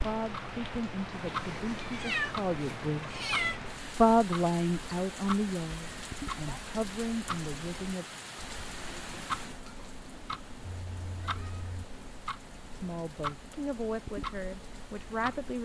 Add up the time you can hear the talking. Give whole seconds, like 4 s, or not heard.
10 s.